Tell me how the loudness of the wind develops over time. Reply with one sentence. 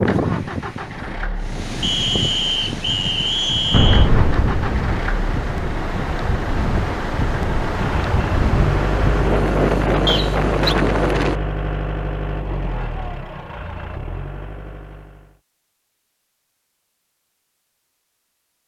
The loudness of the wind goes up.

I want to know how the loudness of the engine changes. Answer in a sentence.
The loudness of the engine goes up, then down.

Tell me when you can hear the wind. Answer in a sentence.
The wind can be heard from 0.0 to 11.4 s.